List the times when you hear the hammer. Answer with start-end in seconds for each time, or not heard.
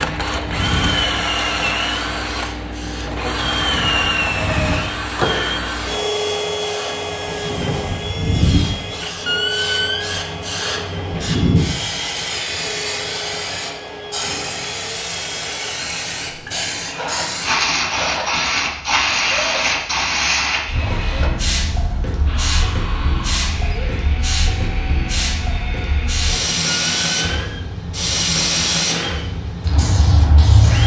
not heard.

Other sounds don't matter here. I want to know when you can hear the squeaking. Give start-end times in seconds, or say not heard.
9.2-10.2, 26.6-27.6.